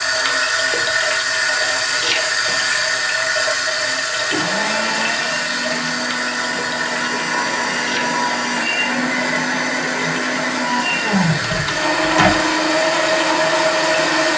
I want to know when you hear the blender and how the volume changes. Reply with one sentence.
You can hear the blender from 3.8 to 14.3 s, getting louder.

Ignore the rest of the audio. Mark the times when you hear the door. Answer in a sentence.
You can hear the door from 11.3 to 12.5 s.